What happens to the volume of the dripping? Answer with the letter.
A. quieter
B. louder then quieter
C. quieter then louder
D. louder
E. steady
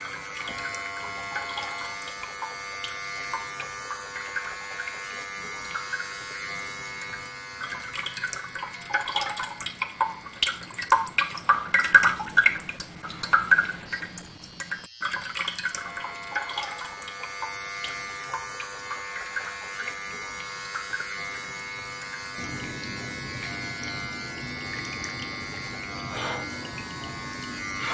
B.